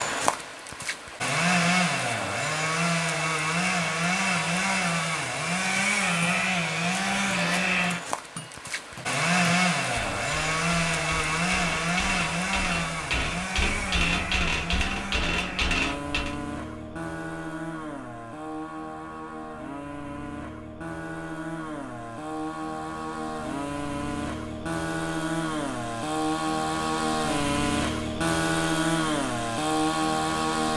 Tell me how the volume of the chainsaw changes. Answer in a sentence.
The volume of the chainsaw goes down, then up.